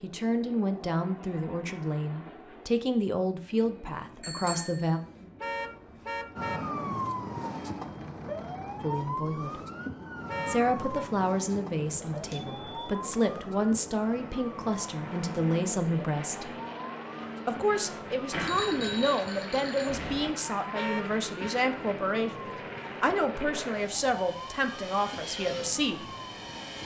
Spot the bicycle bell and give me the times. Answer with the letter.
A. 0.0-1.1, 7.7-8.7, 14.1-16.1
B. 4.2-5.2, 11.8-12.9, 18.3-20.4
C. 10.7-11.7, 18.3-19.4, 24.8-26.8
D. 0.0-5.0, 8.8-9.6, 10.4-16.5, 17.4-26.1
B.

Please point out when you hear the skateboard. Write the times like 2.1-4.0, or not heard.
not heard.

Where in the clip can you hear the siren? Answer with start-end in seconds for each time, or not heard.
6.3-26.8.